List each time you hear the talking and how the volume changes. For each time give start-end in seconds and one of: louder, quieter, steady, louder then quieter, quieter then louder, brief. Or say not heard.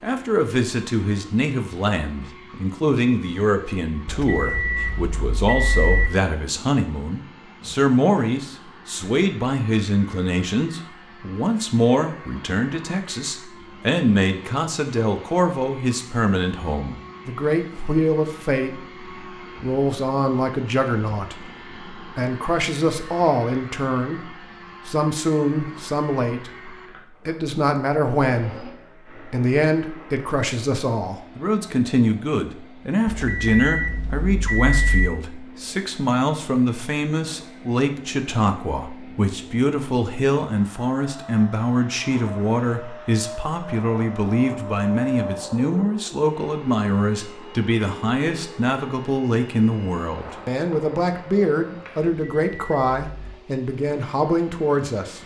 0.0-55.2 steady.